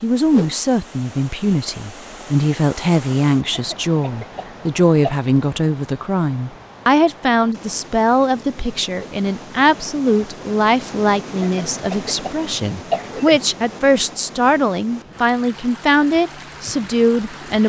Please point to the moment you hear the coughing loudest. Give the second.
13 s.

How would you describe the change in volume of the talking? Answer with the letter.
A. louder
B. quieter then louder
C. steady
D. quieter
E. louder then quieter
C.